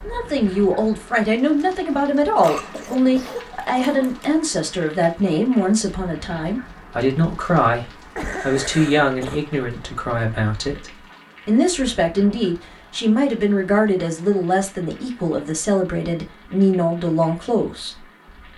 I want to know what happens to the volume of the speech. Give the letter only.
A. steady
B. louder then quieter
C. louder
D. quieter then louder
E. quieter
A.